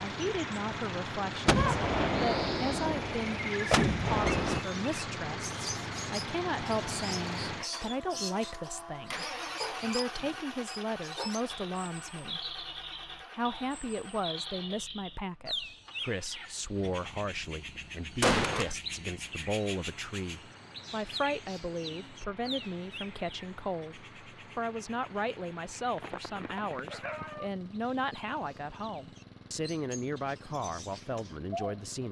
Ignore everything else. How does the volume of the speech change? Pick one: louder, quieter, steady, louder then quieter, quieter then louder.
steady.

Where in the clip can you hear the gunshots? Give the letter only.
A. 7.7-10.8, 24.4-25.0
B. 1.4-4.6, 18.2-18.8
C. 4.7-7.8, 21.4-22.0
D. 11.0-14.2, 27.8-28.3
B.